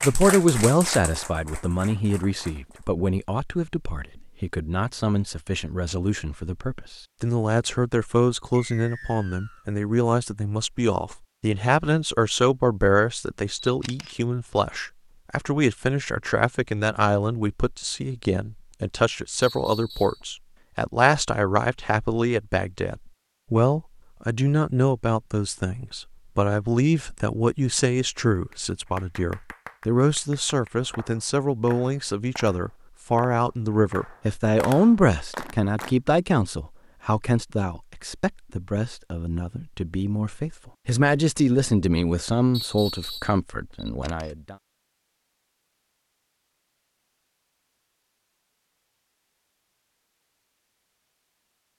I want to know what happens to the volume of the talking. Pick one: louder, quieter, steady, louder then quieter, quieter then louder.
steady.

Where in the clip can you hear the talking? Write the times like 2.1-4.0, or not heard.
0.0-44.5.